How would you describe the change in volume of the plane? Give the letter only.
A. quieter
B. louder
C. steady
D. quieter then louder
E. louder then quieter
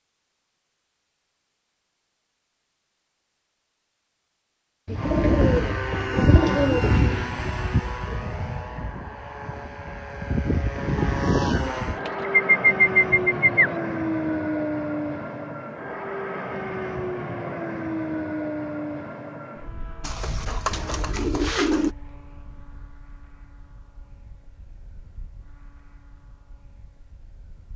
A.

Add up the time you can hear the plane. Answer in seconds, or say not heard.
23 s.